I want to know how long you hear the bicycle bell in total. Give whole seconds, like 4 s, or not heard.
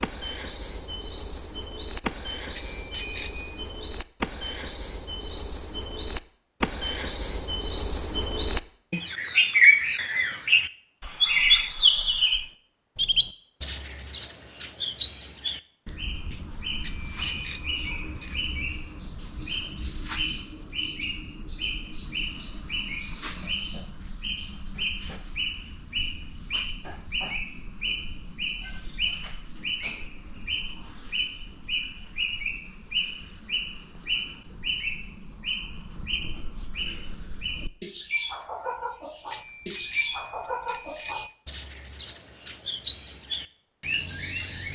5 s.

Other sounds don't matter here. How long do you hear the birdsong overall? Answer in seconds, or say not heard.
45 s.